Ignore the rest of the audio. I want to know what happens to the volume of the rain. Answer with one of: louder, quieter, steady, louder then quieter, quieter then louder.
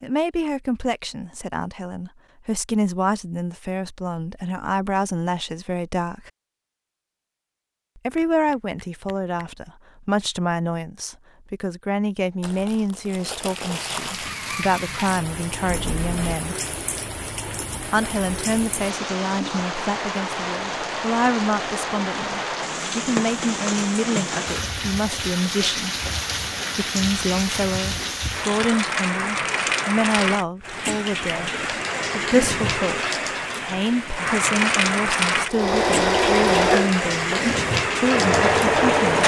louder.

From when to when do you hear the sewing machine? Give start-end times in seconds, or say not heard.
35.5-39.2.